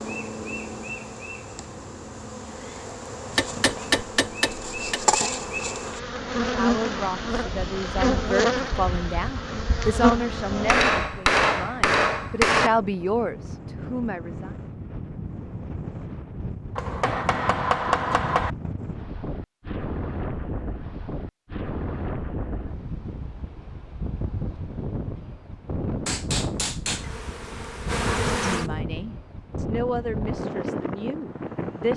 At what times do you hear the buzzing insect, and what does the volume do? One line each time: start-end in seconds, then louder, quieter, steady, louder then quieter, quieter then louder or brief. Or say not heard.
0.0-10.9 louder
26.9-28.9 brief.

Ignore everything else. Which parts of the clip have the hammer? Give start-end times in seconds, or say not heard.
3.3-5.0, 10.7-12.7, 16.8-18.5, 26.1-27.1.